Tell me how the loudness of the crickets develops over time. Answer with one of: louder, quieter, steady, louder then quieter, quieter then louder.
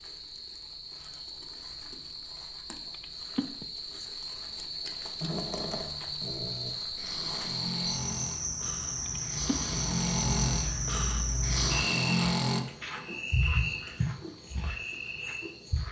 louder.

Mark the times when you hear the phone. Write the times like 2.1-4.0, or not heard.
2.9-3.6, 9.1-9.8.